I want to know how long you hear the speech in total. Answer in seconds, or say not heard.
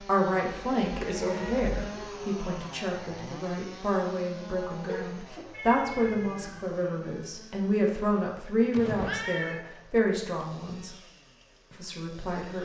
12 s.